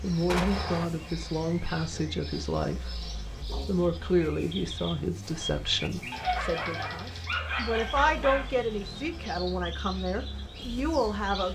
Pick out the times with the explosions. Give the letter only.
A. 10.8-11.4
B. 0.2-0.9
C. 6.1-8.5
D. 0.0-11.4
B.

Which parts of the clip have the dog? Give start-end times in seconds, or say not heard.
6.1-8.5.